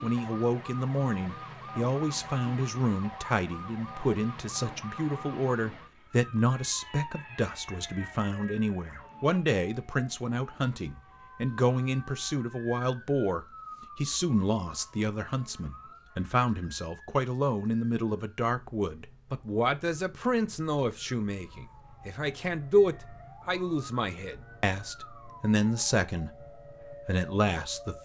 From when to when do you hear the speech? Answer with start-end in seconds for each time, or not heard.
0.0-27.9.